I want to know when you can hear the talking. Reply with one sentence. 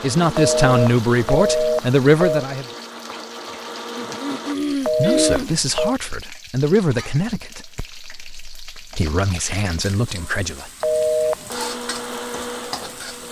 You can hear the talking from 0.0 to 2.6 s and from 4.8 to 10.7 s.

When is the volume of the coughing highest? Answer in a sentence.
The volume of the coughing peaks at 5 seconds.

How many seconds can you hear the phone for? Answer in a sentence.
You can hear the phone for 4 seconds altogether.